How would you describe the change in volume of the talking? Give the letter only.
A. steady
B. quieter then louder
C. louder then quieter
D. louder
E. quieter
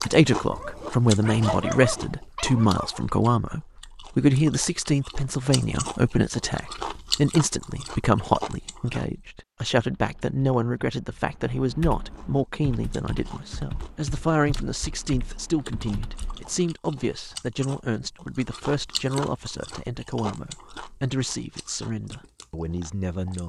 E.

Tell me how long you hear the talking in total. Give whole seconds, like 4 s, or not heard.
23 s.